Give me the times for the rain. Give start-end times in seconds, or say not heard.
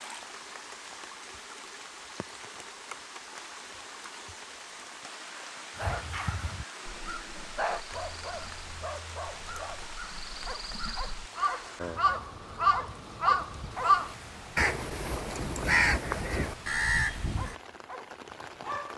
0.0-18.9.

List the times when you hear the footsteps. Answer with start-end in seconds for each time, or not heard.
not heard.